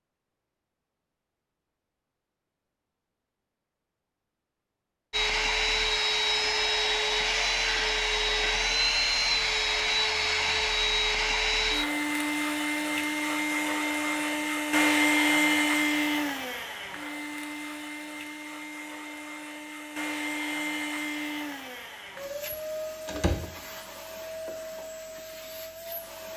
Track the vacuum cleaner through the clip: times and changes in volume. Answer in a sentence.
You can hear the vacuum cleaner from 5.1 to 26.3 s, getting quieter.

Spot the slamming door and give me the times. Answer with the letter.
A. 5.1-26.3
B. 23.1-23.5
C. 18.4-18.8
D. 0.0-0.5
B.